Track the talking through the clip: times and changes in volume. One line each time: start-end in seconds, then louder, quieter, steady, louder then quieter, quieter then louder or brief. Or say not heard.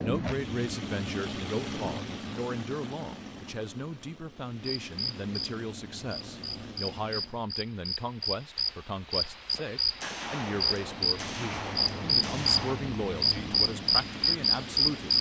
0.0-15.1 steady.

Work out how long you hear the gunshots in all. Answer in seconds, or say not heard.
3 s.